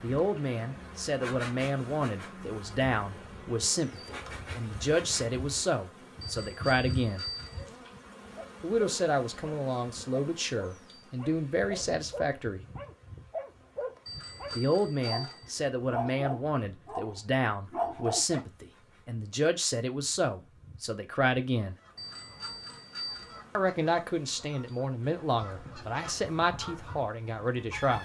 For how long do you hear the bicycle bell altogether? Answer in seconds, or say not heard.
4 s.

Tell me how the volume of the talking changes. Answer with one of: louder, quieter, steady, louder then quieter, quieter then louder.
steady.